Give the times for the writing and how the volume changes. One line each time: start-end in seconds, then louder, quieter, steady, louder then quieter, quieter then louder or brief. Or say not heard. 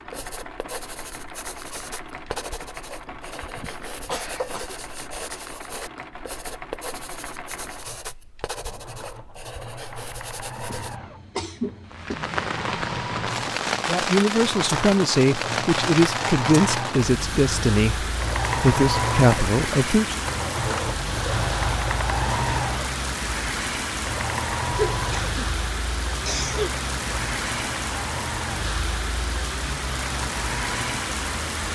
0.1-10.9 steady.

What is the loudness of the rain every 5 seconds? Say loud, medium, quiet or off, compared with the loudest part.
off, off, loud, loud, loud, loud, loud.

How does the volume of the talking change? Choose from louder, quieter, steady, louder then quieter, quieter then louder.
steady.